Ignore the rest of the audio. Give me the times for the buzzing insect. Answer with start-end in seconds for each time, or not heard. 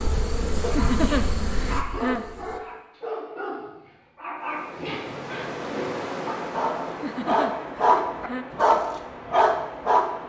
0.0-2.6.